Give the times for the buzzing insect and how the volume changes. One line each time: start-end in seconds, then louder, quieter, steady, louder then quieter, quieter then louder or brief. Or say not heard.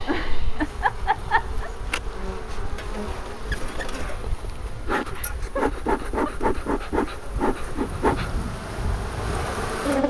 0.0-10.0 louder.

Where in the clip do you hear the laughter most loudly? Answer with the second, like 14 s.
1 s.